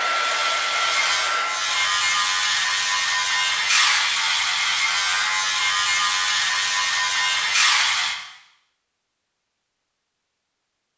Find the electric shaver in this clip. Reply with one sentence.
You can hear the electric shaver from 0.0 to 8.2 s.